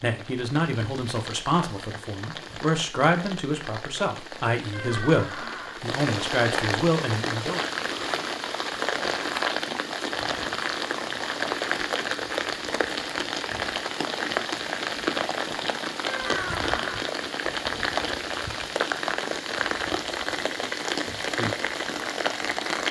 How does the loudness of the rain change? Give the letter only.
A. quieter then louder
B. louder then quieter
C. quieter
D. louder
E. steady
D.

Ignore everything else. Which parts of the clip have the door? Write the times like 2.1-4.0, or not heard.
4.7-5.8, 16.1-17.1.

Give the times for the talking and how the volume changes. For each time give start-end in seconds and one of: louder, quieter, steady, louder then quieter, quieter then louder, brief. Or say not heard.
0.0-7.6 steady.